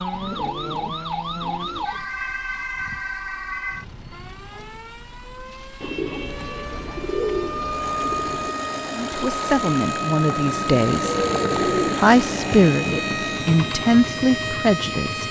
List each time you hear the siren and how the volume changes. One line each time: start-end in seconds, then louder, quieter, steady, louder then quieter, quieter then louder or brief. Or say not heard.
0.0-15.2 quieter then louder.